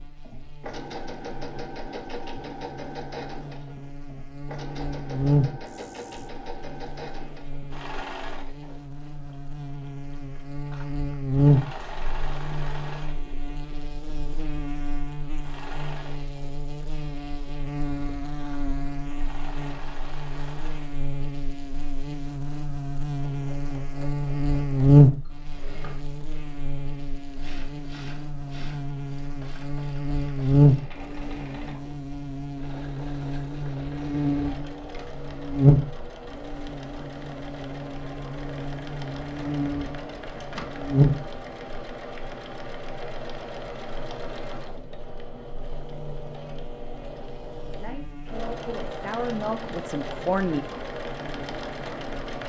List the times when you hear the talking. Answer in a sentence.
The talking can be heard from 47.8 to 50.6 s.